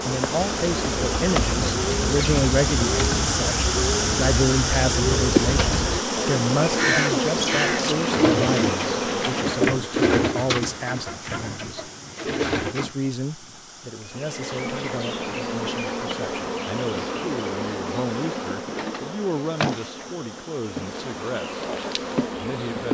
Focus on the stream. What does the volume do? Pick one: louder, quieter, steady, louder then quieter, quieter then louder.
quieter.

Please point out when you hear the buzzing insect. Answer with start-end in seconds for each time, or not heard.
0.0-9.7, 14.1-22.8.